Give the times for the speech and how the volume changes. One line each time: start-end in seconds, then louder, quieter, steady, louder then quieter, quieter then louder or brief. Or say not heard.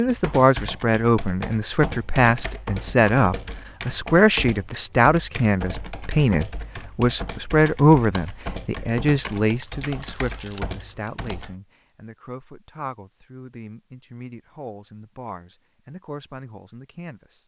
0.0-17.4 quieter.